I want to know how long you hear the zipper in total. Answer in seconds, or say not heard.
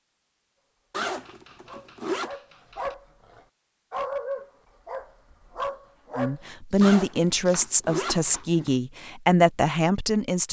3 s.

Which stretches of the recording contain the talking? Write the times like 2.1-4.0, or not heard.
6.2-10.4.